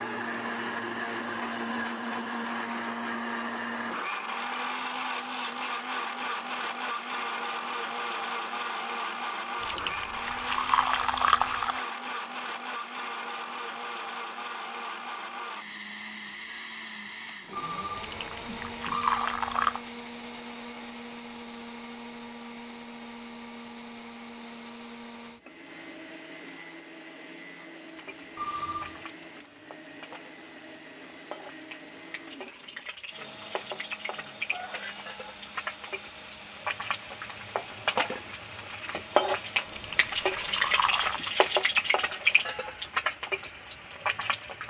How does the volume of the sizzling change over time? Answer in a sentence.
The loudness of the sizzling goes up.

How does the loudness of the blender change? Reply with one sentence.
The volume of the blender goes down.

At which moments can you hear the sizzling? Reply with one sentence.
You can hear the sizzling from 27.9 to 44.6 s.